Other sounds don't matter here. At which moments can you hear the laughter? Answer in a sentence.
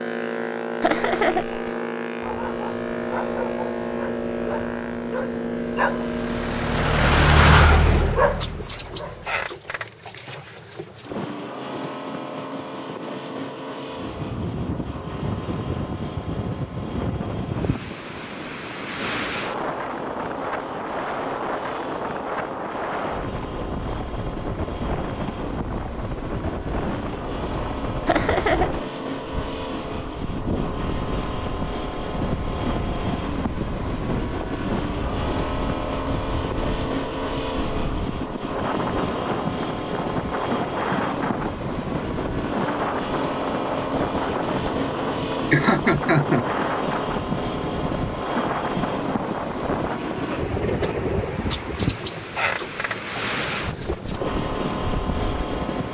The laughter can be heard from 0.8 to 1.8 s, from 28.1 to 28.9 s and from 45.5 to 46.5 s.